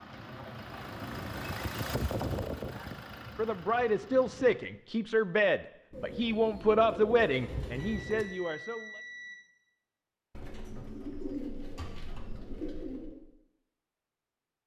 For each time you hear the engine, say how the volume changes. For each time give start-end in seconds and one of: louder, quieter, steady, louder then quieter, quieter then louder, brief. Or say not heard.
0.0-4.5 louder then quieter.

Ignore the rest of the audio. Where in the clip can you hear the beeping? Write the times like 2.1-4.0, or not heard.
7.8-9.3.